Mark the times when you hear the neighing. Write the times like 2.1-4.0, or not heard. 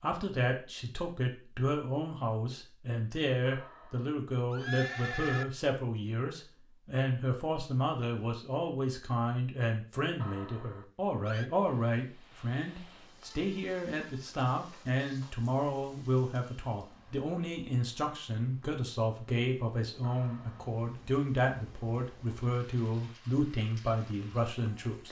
3.5-5.5, 10.2-11.5, 20.0-20.7.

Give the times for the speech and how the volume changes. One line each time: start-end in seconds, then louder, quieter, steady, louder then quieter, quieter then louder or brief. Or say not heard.
0.0-25.0 steady.